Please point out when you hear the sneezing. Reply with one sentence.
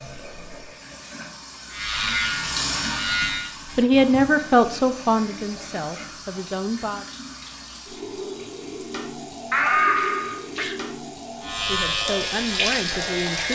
The sneezing can be heard from 9.5 to 10.8 s.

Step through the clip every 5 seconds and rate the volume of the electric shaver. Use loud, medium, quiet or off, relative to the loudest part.
loud, off, loud.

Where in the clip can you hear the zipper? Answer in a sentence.
You can't hear the zipper here.